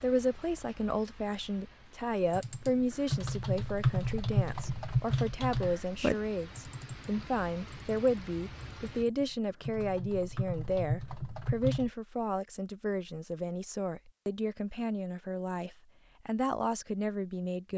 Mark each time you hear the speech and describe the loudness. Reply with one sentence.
The speech can be heard from 0.0 to 17.7 s, at a steady volume.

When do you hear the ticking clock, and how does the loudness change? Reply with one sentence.
The ticking clock can't be heard in this clip.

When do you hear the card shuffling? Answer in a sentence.
The card shuffling can't be heard in this clip.